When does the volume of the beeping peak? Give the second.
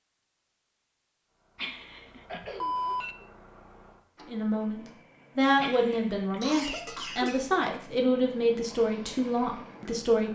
3 s.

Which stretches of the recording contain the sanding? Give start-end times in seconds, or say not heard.
not heard.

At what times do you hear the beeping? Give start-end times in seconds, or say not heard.
1.6-3.1, 5.6-6.5.